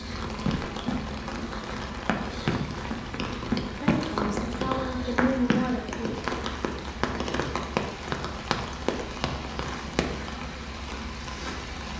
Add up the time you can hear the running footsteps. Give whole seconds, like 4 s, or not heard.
10 s.